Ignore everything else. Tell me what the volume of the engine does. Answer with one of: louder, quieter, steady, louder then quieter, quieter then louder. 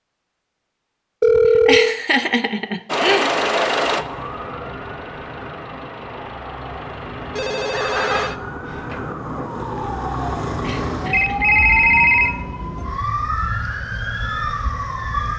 quieter.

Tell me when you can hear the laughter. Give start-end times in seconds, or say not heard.
1.6-3.4, 10.6-11.4.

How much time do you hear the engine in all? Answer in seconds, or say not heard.
6 s.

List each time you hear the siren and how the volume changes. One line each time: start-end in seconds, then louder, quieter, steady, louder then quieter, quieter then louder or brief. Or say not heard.
3.8-15.3 louder.